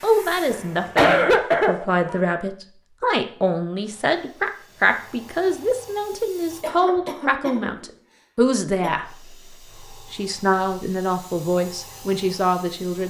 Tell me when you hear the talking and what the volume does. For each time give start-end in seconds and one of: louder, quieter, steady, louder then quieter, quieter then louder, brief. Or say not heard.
0.0-13.0 steady.